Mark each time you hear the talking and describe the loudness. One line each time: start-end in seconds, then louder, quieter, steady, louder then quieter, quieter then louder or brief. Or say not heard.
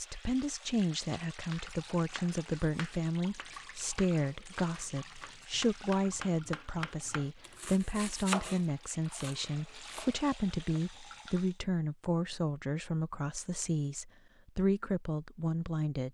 0.0-16.1 steady.